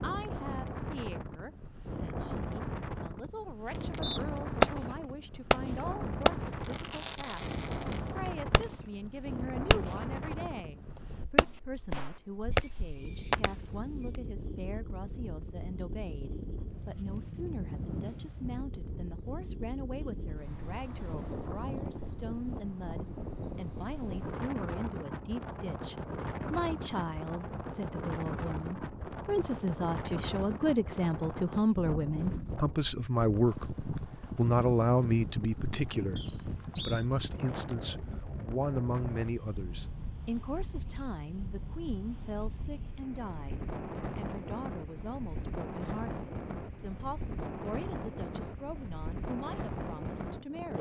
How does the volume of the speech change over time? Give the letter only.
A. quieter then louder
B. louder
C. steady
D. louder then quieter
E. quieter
D.